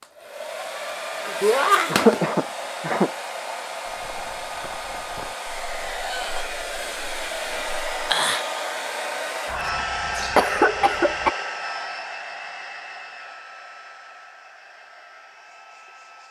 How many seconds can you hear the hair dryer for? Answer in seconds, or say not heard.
16 s.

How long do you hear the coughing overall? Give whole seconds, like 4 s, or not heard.
3 s.